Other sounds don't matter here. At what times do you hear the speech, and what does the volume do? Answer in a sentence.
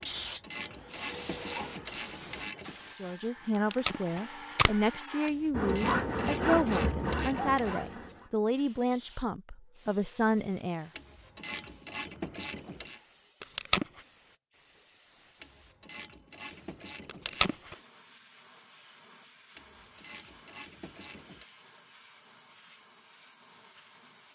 The speech can be heard from 3.0 to 10.9 s, at a steady volume.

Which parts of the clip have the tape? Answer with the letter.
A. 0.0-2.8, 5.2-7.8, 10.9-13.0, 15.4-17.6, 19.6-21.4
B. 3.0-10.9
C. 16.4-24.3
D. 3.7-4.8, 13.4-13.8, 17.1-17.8
D.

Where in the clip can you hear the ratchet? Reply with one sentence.
The ratchet can be heard from 0.0 to 2.8 s, from 5.2 to 7.8 s, from 10.9 to 13.0 s, from 15.4 to 17.6 s and from 19.6 to 21.4 s.